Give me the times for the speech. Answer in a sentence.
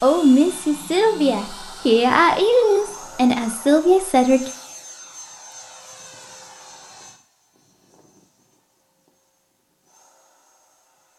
The speech can be heard from 0.0 to 4.5 s.